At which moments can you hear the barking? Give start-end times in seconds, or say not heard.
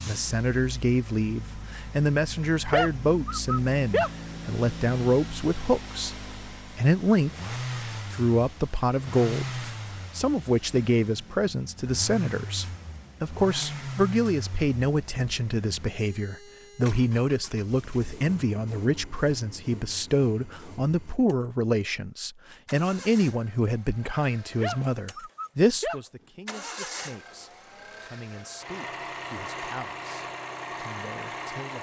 2.7-4.1, 24.6-26.0.